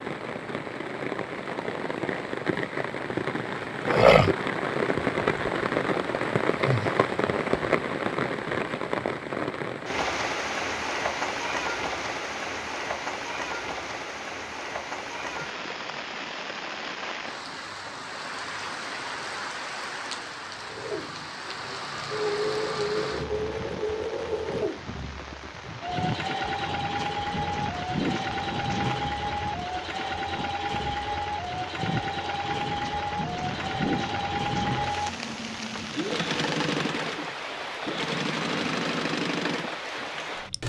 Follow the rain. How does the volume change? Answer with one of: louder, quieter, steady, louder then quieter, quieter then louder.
quieter.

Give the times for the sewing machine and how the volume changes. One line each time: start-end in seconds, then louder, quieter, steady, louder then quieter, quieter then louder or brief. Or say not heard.
20.6-40.6 steady.